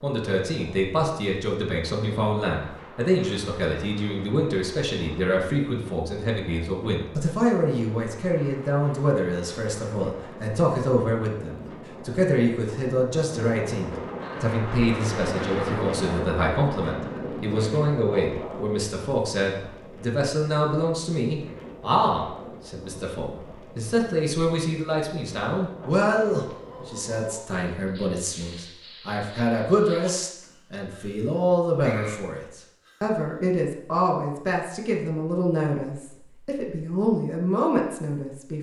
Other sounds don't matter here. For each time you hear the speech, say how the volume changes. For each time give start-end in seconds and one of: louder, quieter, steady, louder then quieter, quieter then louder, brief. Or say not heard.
0.0-38.5 steady.